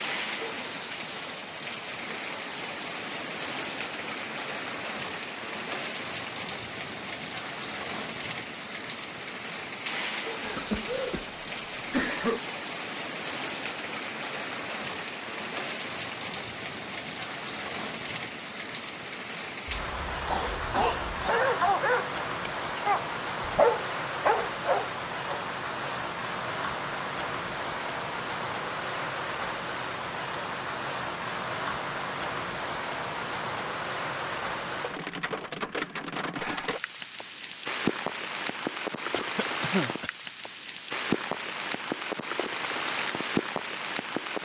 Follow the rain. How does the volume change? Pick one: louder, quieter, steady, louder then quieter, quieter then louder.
steady.